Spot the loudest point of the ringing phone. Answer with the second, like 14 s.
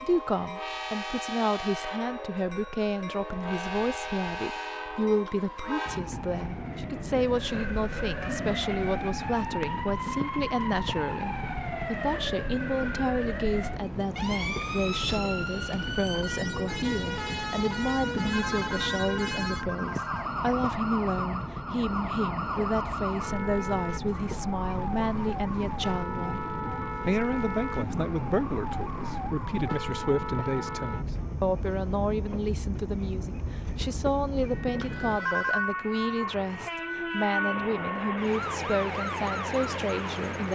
35 s.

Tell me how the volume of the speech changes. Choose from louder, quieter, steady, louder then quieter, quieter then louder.
steady.